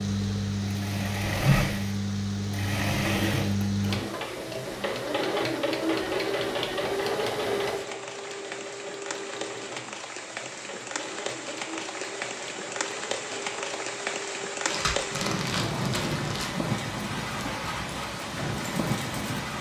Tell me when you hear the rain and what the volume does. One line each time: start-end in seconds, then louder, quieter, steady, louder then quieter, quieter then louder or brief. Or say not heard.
0.0-19.5 louder.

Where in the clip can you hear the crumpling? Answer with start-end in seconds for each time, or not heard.
14.7-16.5.